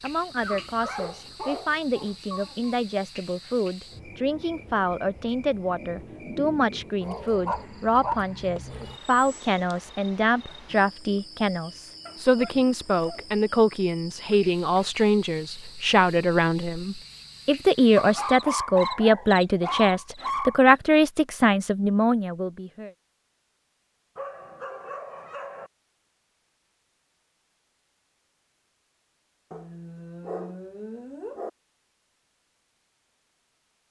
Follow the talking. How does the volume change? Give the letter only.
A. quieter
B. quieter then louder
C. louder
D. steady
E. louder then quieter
C.